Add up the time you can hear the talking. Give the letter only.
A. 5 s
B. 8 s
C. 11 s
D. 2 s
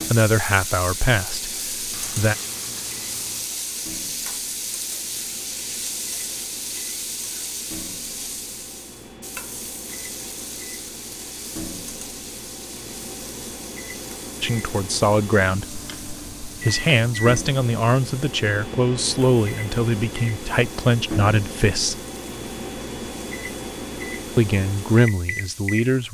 C.